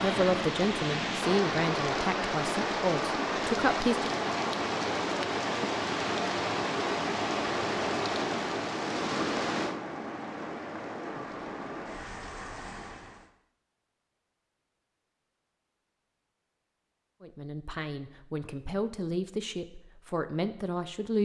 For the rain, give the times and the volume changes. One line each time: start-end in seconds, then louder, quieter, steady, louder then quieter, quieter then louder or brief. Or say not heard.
0.0-13.3 quieter.